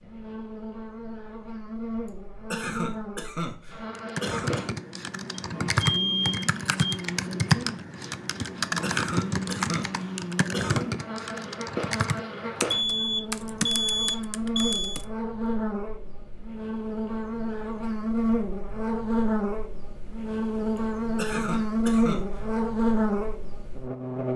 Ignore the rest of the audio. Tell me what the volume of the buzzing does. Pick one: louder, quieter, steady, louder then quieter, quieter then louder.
louder.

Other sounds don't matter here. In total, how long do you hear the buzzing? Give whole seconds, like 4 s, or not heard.
24 s.